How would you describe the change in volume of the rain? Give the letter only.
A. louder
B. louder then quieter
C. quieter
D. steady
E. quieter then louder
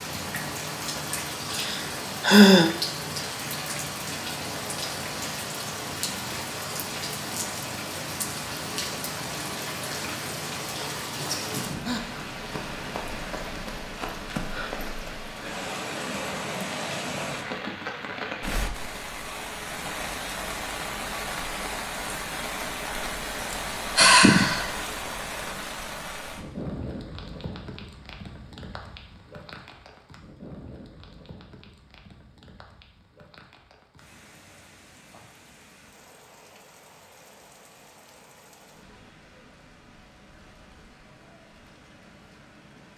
C.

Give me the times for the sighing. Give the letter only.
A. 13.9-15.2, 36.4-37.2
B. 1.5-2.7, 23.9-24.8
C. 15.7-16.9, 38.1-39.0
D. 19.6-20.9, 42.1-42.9
B.